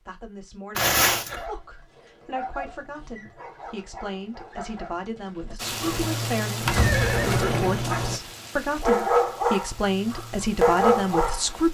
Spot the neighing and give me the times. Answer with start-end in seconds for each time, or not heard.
0.8-1.4, 6.7-8.2.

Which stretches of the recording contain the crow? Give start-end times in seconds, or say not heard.
not heard.